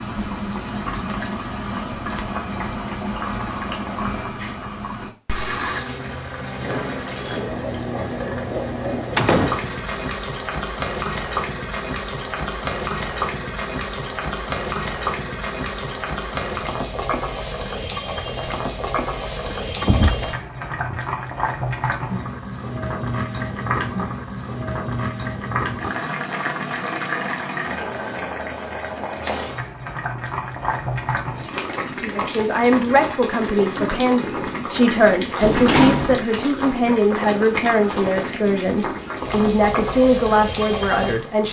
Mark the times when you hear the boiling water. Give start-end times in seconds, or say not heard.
0.0-41.4.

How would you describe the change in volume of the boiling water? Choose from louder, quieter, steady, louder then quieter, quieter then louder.
steady.